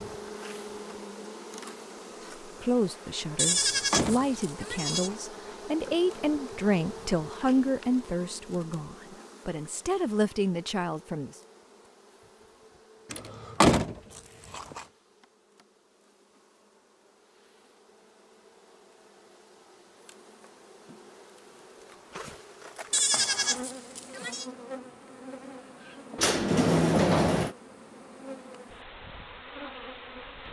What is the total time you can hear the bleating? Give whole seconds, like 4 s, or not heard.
3 s.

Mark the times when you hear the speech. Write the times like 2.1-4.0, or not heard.
2.6-11.3.